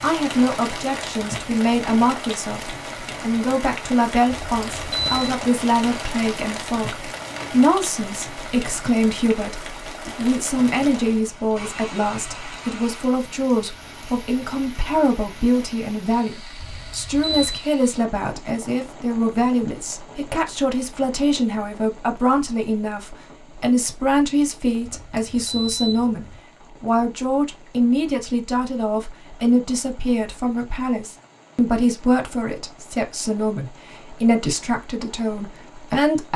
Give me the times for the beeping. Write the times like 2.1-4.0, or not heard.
4.2-5.3, 16.6-17.6, 24.8-26.4.